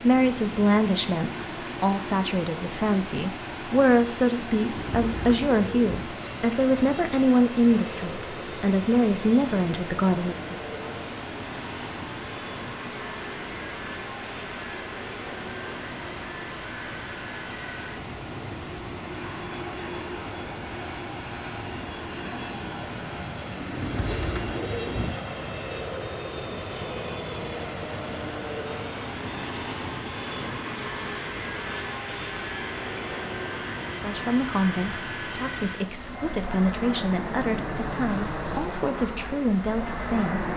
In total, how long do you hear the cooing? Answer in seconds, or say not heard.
3 s.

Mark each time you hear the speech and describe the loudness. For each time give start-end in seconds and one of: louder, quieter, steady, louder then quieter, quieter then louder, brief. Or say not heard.
0.0-10.6 steady
34.0-40.5 steady.